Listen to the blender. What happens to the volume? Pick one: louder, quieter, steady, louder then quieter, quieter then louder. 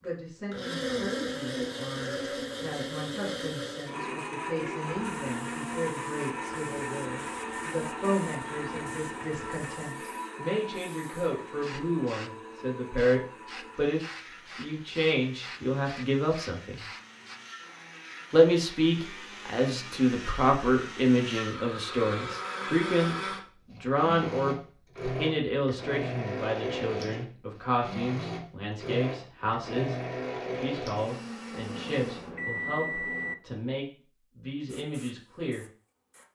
quieter then louder.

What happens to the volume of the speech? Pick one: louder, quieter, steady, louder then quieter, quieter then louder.
louder then quieter.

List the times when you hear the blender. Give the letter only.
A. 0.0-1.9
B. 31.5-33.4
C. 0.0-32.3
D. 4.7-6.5
C.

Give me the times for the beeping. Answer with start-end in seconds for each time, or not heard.
31.5-33.4.